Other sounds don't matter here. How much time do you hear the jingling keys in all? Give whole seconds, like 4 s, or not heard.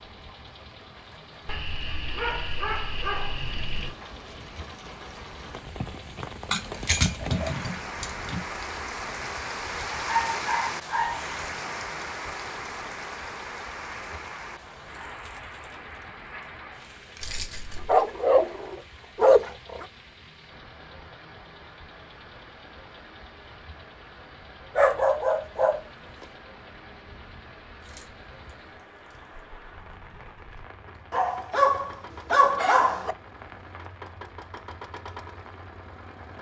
4 s.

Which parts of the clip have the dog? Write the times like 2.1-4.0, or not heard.
1.4-4.0, 9.9-11.2, 17.9-19.9, 24.8-25.8, 31.1-33.1.